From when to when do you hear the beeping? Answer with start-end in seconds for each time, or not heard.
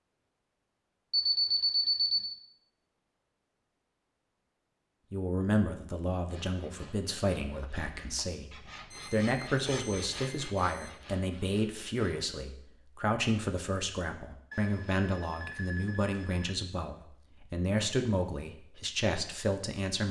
1.1-2.4, 8.9-10.9, 14.5-16.5.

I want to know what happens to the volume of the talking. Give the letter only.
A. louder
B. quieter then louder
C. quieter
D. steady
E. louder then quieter
D.